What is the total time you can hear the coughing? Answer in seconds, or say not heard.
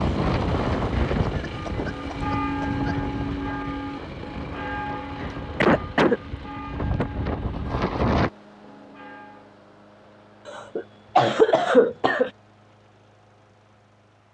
5 s.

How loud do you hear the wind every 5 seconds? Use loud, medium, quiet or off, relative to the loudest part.
loud, loud, off.